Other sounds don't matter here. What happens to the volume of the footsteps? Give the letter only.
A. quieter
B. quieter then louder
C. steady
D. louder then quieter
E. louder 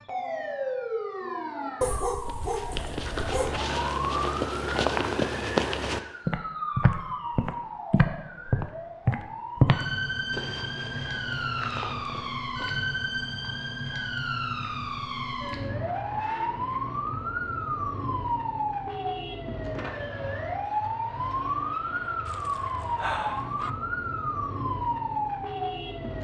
D.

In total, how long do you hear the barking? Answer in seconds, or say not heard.
3 s.